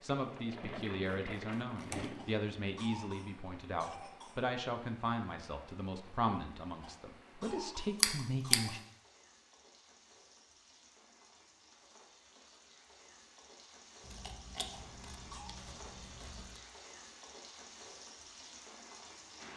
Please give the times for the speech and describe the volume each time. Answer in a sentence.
The speech can be heard from 0.0 to 8.8 s, at a steady volume.